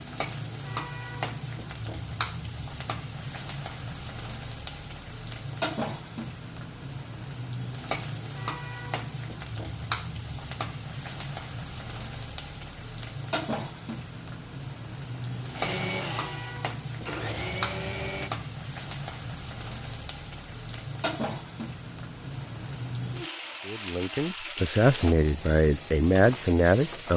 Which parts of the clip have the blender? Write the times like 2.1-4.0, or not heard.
15.3-18.3.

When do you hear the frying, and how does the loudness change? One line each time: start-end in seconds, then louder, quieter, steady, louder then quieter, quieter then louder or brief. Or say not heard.
0.0-27.1 steady.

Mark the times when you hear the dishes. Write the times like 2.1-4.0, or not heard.
not heard.